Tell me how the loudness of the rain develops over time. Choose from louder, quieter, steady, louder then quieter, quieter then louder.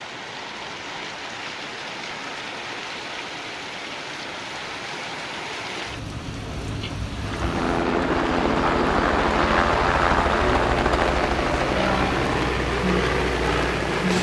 louder.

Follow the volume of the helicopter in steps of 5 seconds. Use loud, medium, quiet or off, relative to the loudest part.
off, loud, loud.